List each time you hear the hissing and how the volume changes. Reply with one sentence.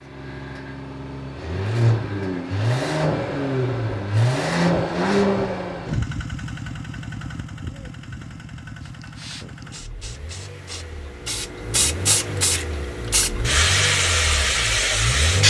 The hissing can be heard from 8.8 to 15.4 s, getting louder.